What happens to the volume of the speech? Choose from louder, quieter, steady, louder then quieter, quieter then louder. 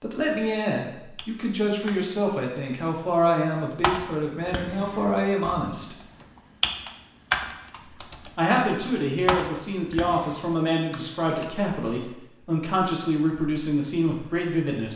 steady.